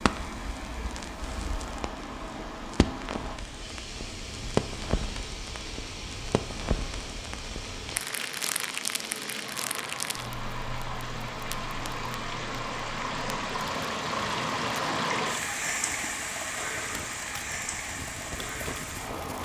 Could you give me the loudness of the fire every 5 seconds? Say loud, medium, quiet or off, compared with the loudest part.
loud, loud, medium, medium.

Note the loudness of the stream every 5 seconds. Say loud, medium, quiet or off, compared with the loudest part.
medium, medium, loud, loud.